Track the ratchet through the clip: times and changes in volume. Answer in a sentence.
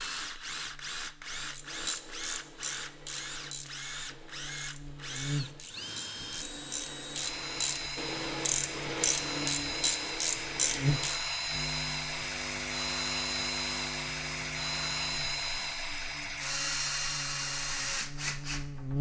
The ratchet can be heard from 1.5 to 11.2 s, getting quieter then louder.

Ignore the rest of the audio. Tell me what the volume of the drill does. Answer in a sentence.
The loudness of the drill goes up.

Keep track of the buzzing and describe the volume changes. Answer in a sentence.
The loudness of the buzzing goes up, then down.